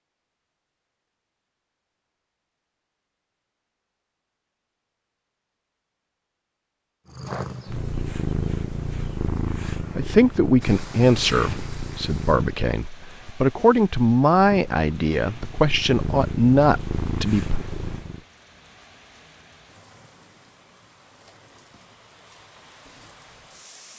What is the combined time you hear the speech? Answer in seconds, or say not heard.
8 s.